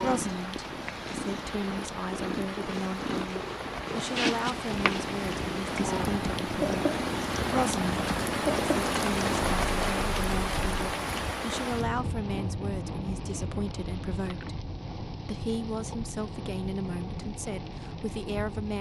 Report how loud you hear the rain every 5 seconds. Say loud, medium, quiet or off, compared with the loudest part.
medium, loud, loud, medium.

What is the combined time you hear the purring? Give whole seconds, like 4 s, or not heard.
11 s.